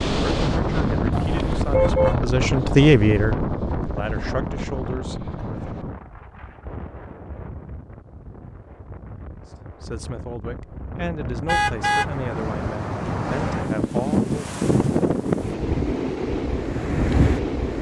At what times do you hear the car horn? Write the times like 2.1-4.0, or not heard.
1.1-2.1, 11.4-12.1.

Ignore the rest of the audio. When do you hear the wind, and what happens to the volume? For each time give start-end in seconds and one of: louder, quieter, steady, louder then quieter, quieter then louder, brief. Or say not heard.
0.0-17.7 quieter then louder.